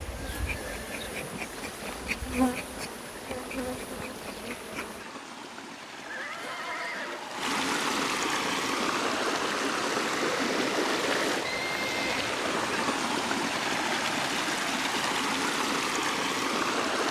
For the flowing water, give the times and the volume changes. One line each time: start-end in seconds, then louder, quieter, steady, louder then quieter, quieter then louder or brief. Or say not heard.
0.0-17.0 louder.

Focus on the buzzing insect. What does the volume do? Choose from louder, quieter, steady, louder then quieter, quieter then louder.
louder then quieter.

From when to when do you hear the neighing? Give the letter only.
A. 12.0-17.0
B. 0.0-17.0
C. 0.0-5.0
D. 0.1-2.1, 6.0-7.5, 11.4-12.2
D.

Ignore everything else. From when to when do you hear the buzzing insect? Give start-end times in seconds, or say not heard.
0.0-5.0.